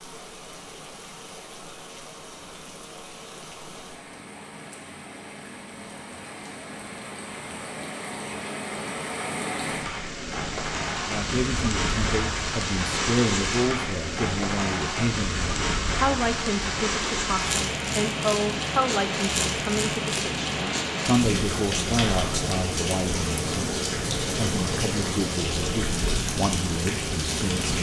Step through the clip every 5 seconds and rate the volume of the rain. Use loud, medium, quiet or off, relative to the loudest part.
quiet, medium, loud, loud, loud, loud.